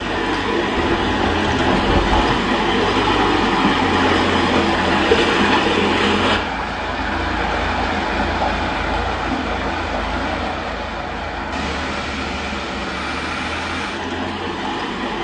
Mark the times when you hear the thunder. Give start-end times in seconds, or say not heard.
0.8-2.4.